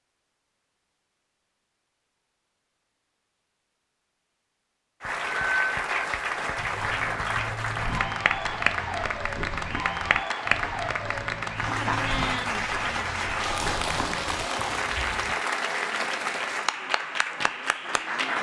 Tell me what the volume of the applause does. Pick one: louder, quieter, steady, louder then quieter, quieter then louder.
steady.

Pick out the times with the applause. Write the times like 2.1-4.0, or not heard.
5.0-18.3.